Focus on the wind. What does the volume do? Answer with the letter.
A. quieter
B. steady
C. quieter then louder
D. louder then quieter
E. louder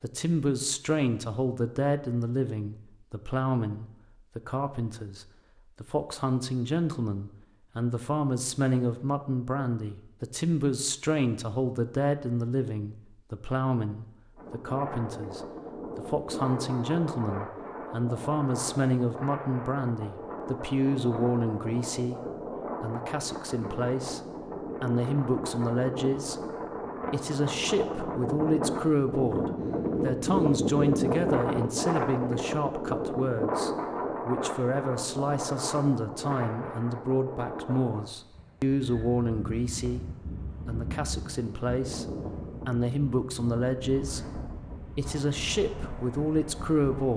D.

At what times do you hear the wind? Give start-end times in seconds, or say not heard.
14.3-47.1.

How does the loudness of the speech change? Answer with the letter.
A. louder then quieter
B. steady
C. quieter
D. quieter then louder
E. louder
B.